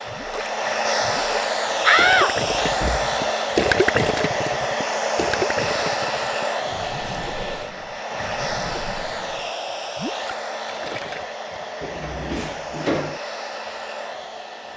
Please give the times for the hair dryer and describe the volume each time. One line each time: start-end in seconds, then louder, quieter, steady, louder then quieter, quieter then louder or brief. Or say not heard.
0.0-14.7 quieter.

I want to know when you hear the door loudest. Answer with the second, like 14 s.
2 s.